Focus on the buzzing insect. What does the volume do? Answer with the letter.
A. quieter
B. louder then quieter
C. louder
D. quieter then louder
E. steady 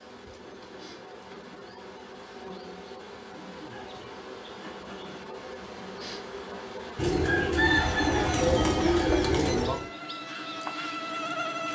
C.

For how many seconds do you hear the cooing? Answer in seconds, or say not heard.
3 s.